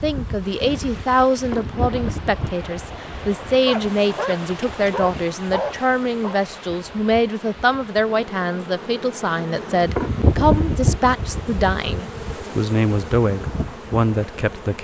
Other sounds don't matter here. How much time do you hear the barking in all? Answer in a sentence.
The barking can be heard for 3 seconds in total.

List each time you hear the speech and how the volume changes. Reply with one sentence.
The speech can be heard from 0.0 to 14.8 s, at a steady volume.